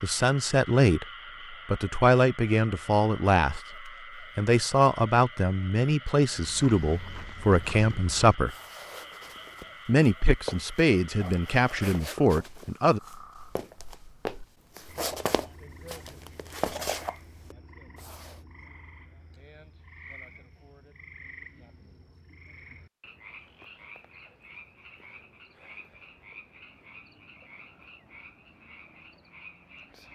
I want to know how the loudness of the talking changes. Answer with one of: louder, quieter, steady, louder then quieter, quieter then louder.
steady.